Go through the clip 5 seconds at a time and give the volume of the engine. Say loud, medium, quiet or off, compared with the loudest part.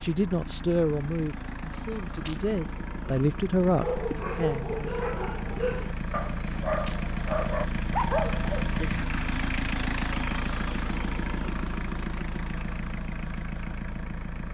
medium, loud, loud.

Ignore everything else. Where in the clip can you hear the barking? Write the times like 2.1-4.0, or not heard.
3.6-8.7.